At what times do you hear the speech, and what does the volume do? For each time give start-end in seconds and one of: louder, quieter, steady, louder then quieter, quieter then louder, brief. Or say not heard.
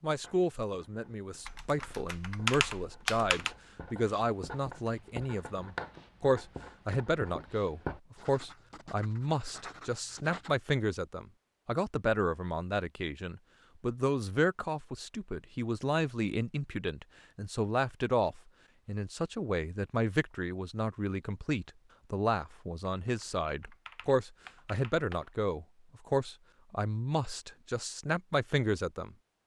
0.0-29.1 steady.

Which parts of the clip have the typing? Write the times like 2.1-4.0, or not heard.
1.4-3.5, 23.1-25.4.